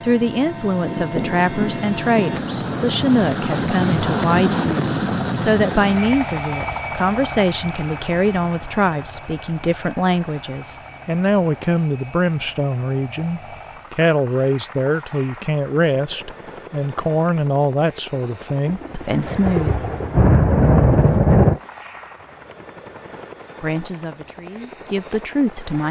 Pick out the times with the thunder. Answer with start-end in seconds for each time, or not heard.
0.8-2.4, 18.6-21.6.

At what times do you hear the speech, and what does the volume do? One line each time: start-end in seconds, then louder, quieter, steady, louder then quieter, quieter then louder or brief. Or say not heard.
0.0-19.9 steady
23.6-25.8 brief.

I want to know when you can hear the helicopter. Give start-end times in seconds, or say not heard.
0.0-25.8.